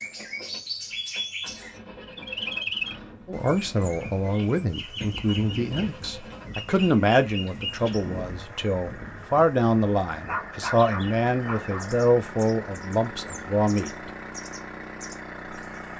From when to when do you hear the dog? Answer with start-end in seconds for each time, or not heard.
10.2-11.9.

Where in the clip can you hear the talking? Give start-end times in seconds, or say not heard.
3.2-14.1.